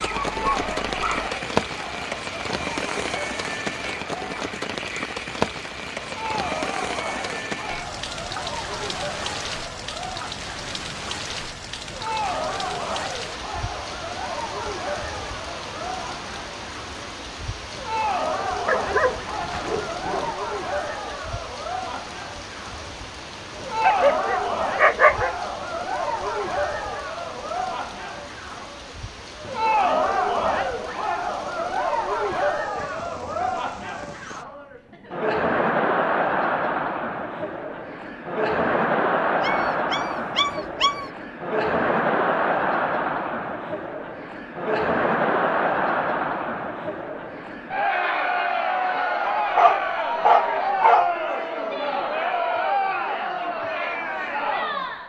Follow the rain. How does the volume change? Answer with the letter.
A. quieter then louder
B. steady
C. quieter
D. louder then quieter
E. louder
C.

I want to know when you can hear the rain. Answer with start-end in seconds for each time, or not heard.
0.0-34.5.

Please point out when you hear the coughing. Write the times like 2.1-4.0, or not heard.
not heard.